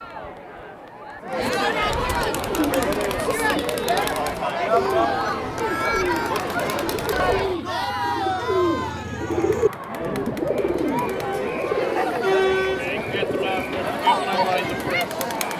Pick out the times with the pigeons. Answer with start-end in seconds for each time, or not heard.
2.3-14.0.